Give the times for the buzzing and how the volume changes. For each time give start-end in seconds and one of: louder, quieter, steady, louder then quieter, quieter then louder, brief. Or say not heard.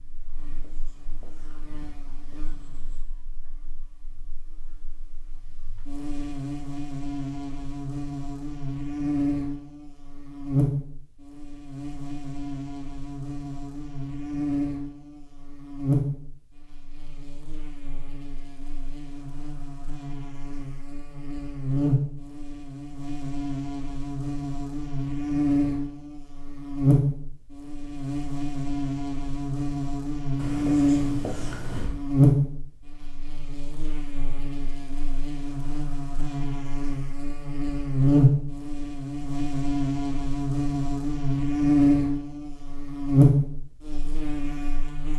0.0-45.1 louder.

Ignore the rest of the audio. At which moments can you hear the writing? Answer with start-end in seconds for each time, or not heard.
0.3-3.0, 30.4-31.9.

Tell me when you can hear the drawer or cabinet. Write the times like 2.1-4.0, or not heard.
not heard.